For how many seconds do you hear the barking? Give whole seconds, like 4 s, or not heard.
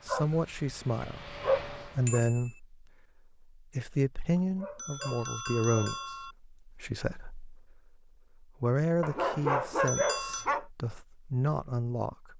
5 s.